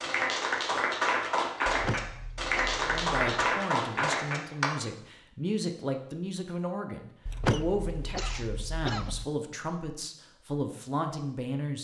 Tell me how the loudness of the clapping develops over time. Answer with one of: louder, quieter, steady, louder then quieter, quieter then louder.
steady.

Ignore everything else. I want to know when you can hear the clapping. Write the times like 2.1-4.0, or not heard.
0.0-4.7.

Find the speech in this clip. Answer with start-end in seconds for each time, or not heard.
2.9-11.7.